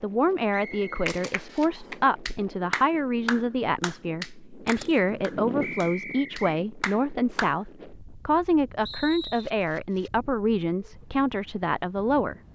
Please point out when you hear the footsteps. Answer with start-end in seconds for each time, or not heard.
not heard.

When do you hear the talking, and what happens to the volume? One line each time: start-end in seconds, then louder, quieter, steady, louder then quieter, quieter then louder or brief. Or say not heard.
0.0-12.4 steady.